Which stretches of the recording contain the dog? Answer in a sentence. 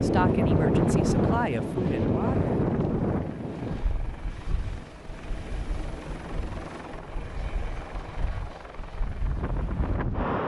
You can't hear the dog here.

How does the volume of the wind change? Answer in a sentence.
The volume of the wind goes down, then up.